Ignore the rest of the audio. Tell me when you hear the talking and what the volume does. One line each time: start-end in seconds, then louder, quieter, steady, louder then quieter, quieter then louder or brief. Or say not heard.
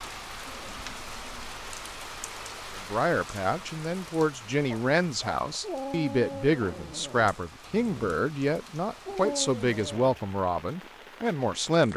2.8-11.9 steady.